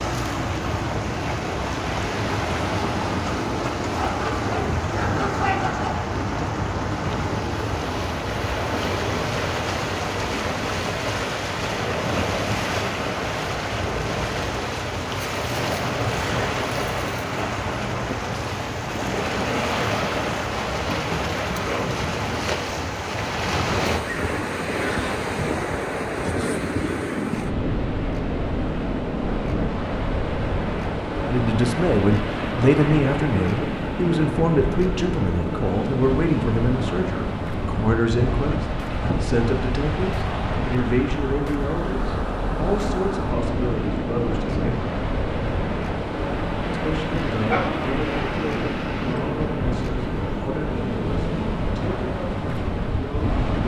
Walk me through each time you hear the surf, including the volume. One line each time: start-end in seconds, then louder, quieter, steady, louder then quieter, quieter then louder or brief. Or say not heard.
0.0-53.6 steady.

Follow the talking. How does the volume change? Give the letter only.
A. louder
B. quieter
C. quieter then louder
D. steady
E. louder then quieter
B.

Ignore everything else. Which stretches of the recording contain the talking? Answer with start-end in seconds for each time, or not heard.
31.2-44.9, 46.7-53.6.